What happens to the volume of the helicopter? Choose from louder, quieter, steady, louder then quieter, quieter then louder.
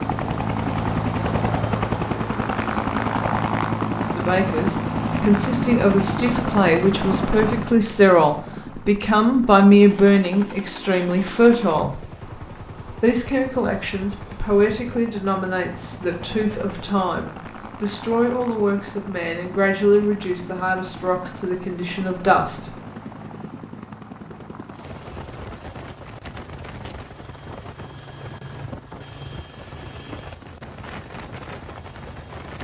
quieter.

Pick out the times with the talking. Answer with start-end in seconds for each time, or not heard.
3.9-12.1, 13.0-22.8.